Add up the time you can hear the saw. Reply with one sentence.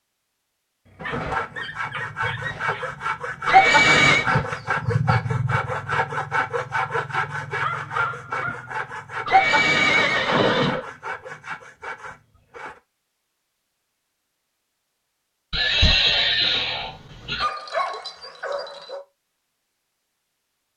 You can hear the saw for 12 seconds altogether.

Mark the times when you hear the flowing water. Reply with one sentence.
The flowing water can't be heard in this clip.